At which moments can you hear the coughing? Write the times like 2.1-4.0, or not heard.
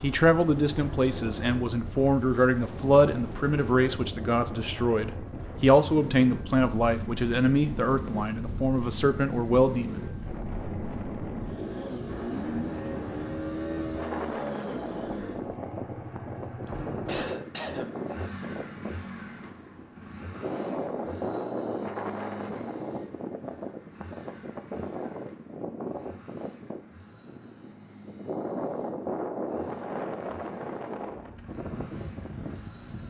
16.6-17.9.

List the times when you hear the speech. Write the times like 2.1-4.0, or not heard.
0.0-10.1.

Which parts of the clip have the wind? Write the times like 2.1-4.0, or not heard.
0.0-33.0.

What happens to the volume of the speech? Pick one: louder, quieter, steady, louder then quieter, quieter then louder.
steady.